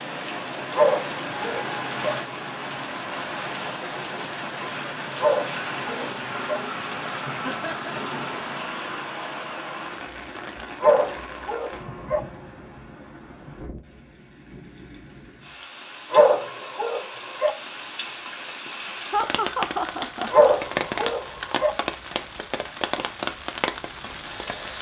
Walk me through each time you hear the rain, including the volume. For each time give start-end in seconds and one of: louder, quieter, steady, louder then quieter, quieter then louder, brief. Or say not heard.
0.0-24.7 quieter then louder.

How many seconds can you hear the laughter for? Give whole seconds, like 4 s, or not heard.
2 s.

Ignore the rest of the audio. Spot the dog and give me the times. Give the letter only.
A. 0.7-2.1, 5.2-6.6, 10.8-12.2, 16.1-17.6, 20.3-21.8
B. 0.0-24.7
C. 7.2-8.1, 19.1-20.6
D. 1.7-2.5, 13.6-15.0
A.